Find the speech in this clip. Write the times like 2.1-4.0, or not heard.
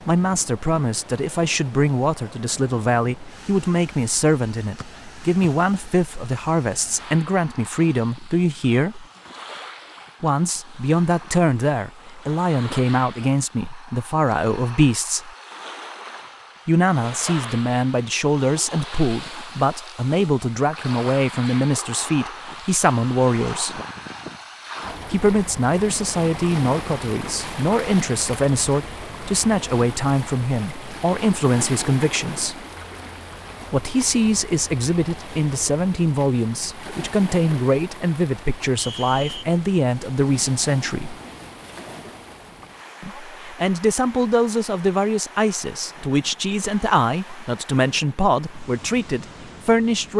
0.1-9.1, 10.2-15.3, 16.6-23.8, 25.1-32.6, 33.7-41.1, 43.0-50.1.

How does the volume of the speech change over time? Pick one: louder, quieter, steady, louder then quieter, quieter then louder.
steady.